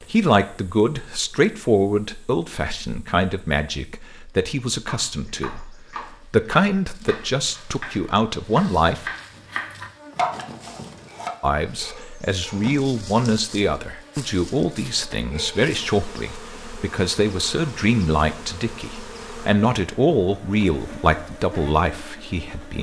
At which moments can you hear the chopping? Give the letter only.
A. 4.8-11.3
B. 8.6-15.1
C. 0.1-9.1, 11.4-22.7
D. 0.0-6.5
A.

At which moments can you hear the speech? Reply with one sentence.
You can hear the speech from 0.1 to 9.1 s and from 11.4 to 22.7 s.